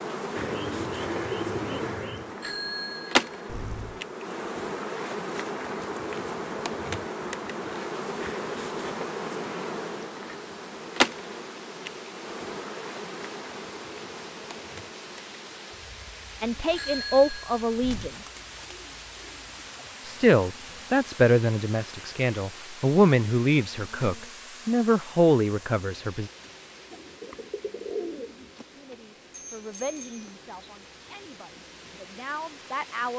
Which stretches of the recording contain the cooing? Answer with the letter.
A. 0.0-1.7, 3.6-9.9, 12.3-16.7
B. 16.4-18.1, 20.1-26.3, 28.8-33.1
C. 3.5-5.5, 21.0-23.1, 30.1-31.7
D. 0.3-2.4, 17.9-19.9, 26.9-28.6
D.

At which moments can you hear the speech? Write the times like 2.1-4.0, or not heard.
16.4-18.1, 20.1-26.3, 28.8-33.1.